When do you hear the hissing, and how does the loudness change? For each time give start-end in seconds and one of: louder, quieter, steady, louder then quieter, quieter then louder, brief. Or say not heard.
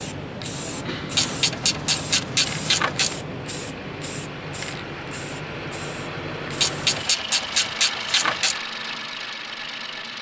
0.0-7.2 quieter.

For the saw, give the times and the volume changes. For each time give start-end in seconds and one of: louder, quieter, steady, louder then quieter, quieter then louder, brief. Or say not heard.
not heard.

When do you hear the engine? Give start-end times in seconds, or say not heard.
0.0-10.1.